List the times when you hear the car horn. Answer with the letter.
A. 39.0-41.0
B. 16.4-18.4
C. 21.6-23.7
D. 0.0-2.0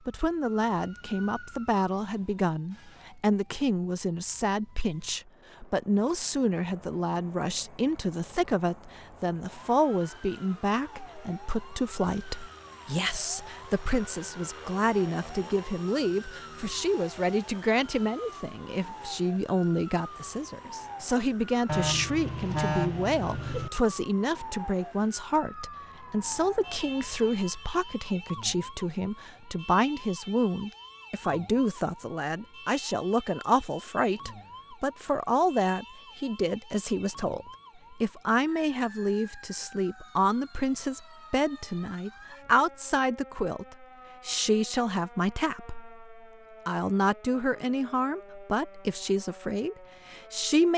C.